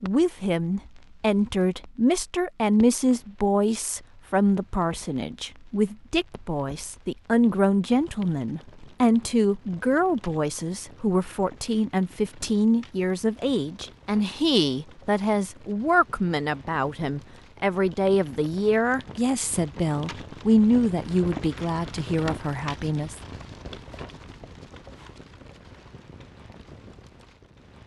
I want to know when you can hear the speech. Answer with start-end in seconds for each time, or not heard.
0.0-23.2.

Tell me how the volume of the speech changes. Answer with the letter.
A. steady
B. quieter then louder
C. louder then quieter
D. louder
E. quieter
A.